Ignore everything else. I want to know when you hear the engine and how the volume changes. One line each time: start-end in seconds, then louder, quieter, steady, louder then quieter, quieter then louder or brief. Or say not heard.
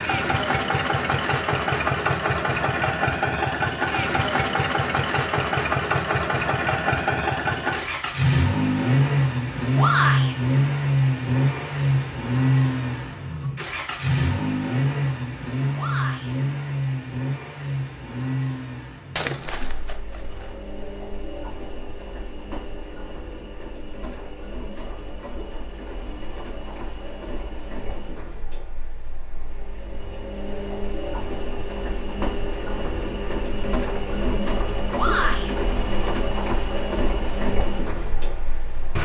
0.0-39.0 quieter then louder.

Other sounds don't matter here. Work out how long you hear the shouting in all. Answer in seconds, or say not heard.
2 s.